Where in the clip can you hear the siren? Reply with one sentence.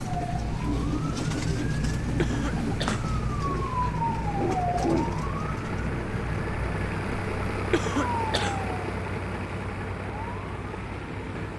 You can hear the siren from 0.0 to 11.5 s.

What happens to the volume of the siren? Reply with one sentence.
The volume of the siren goes down.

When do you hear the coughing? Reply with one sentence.
You can hear the coughing from 2.1 to 3.0 s and from 7.7 to 8.6 s.